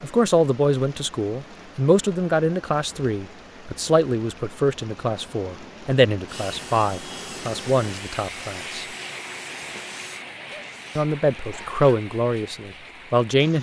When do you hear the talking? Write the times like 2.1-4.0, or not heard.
0.0-8.8, 10.9-13.5.